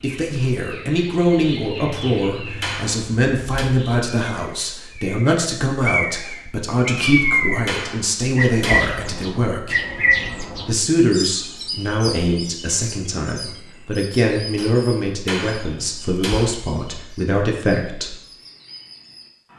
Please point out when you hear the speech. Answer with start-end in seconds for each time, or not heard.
0.0-9.8, 10.7-18.1.